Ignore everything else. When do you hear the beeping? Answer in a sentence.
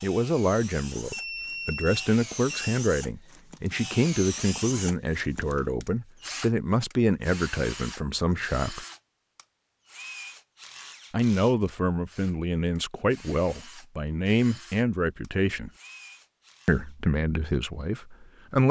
The beeping can be heard from 1.1 to 2.8 s.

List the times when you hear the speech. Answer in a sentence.
The speech can be heard from 0.0 to 8.8 s, from 11.1 to 15.7 s and from 16.6 to 18.6 s.